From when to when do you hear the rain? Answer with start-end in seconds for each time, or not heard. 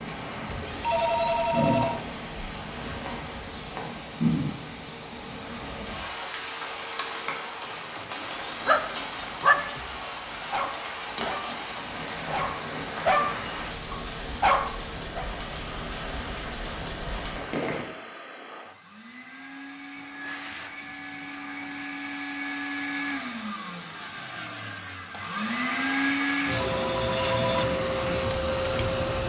0.0-17.9.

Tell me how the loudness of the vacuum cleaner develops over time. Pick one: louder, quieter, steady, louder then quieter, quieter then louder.
louder.